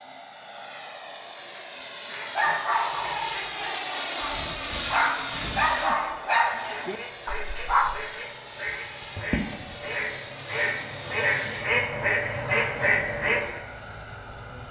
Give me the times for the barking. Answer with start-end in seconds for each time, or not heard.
2.4-8.1.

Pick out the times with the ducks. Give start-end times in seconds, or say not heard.
1.5-13.6.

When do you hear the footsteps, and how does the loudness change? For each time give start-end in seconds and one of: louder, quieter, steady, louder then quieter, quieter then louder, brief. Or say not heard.
not heard.